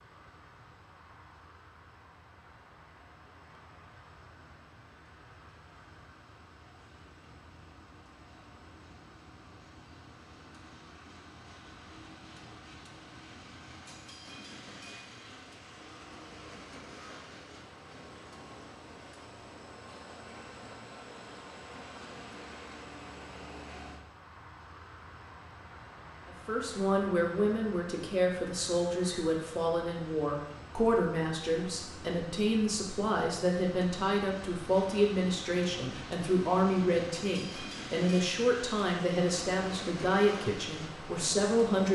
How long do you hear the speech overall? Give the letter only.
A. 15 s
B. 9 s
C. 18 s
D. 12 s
A.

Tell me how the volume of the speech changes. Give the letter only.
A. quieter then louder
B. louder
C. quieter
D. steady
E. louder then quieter
D.